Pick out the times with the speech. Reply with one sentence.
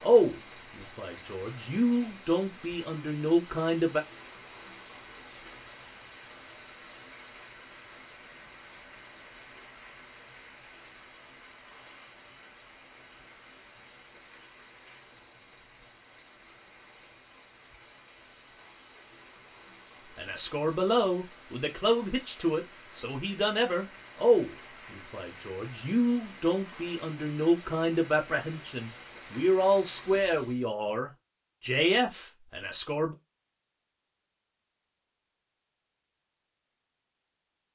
The speech can be heard from 0.0 to 4.0 s and from 20.1 to 33.1 s.